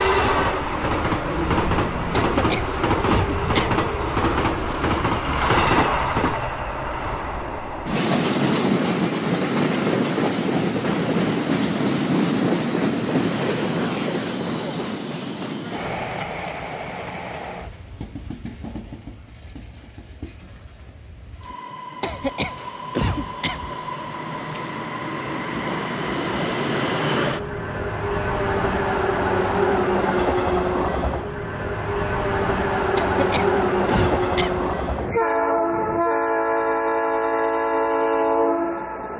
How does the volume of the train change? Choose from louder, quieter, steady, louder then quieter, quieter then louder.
quieter then louder.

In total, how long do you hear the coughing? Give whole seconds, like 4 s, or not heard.
5 s.